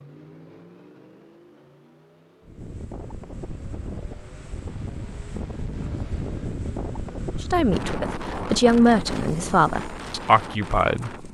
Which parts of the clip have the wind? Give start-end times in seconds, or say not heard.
2.4-11.2.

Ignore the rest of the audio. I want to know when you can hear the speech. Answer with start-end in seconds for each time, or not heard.
7.4-11.2.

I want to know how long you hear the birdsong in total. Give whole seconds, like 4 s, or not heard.
not heard.